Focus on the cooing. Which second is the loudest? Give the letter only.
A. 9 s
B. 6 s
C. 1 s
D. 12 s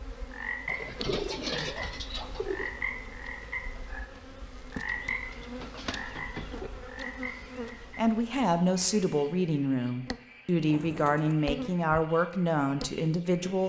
C.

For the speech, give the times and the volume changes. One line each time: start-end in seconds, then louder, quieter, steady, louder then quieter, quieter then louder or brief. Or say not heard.
8.0-13.6 steady.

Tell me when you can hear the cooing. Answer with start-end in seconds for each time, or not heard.
0.7-2.7, 4.8-6.7, 10.6-11.3.